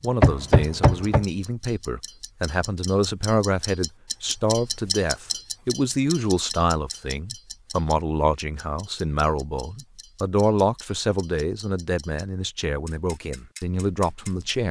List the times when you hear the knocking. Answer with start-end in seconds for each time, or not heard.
0.2-1.2.